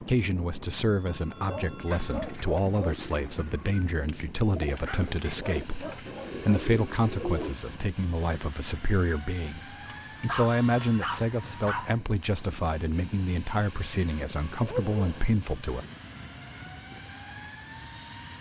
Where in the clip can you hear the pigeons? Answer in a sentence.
You can hear the pigeons from 1.9 to 7.5 s.